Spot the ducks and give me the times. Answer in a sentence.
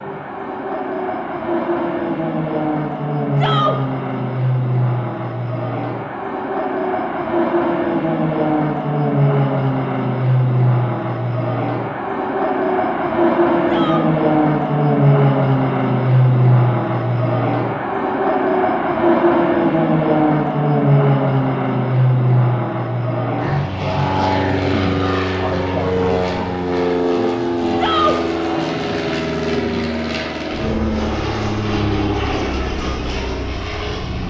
You can't hear the ducks here.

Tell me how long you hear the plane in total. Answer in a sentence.
You can hear the plane for 34 seconds altogether.